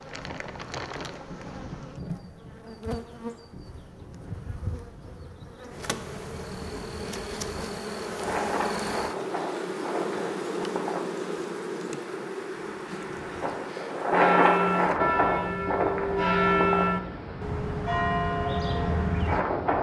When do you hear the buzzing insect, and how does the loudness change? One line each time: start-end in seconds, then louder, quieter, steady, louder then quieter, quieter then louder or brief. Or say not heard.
0.0-19.7 louder then quieter.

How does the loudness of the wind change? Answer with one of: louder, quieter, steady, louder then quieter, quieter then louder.
louder then quieter.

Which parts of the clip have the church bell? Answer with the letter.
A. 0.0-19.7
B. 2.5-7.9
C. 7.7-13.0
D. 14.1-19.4
D.